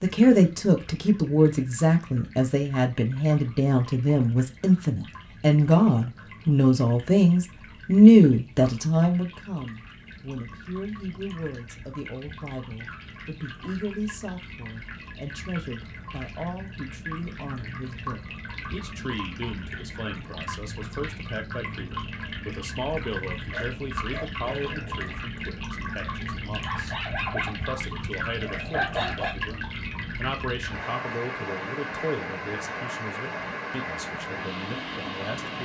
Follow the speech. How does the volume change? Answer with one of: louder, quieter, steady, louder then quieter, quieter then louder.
quieter.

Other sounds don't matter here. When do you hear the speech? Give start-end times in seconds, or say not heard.
0.0-35.6.